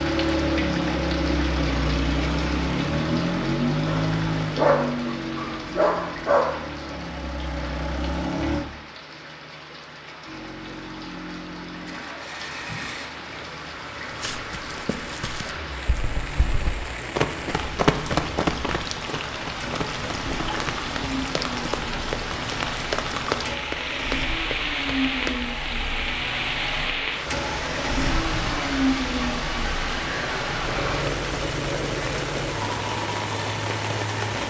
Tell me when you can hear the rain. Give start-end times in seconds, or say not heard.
0.0-34.4.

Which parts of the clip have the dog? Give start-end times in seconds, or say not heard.
3.9-6.5.